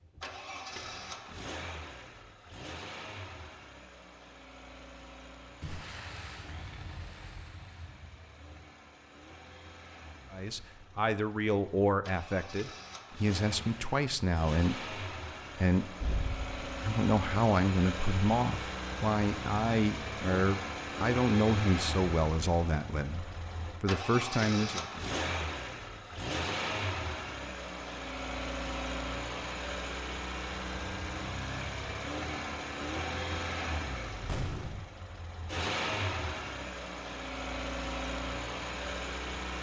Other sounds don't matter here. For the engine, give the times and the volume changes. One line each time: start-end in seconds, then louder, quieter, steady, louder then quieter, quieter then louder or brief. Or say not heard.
0.0-39.5 louder.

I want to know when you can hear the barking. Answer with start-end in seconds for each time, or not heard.
not heard.